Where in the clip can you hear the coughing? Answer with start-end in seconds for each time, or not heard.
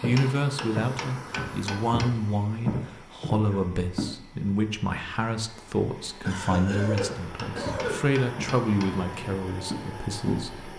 6.2-8.1.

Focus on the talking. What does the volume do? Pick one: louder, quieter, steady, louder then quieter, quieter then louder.
steady.